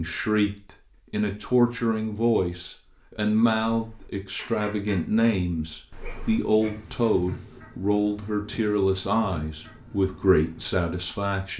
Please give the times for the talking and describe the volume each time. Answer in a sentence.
You can hear the talking from 0.0 to 11.5 s, at a steady volume.